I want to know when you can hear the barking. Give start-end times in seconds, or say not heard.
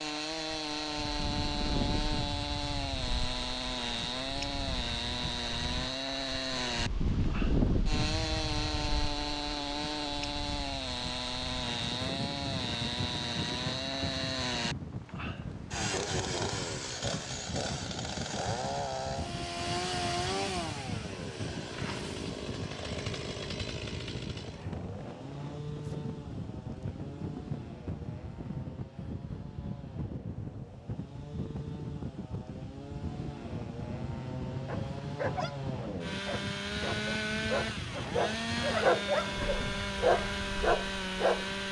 34.6-41.6.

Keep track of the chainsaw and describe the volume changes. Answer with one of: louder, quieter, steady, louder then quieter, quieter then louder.
quieter then louder.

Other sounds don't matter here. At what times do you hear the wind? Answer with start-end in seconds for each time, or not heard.
0.1-41.6.